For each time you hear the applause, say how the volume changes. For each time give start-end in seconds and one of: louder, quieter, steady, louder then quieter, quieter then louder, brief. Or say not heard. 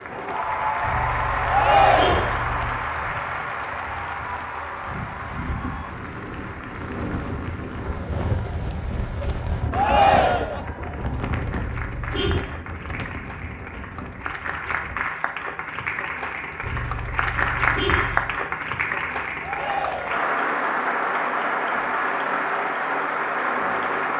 0.0-24.1 quieter then louder.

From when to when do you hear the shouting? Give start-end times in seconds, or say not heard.
1.4-2.4, 9.7-10.7, 19.4-20.2.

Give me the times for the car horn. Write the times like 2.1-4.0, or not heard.
0.8-2.8, 11.0-12.4, 16.6-18.4.